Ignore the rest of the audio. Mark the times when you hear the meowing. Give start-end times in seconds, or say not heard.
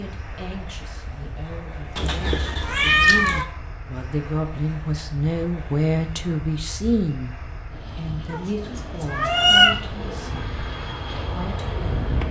1.9-3.5, 8.3-9.8.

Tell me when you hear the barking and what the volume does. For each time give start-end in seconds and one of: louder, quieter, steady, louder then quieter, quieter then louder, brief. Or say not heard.
not heard.